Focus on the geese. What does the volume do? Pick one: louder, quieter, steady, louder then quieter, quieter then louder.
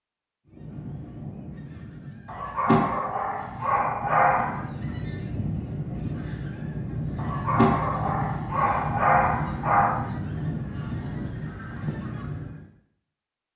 louder.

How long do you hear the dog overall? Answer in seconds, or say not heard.
5 s.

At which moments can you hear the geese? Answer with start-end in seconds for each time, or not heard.
0.5-12.7.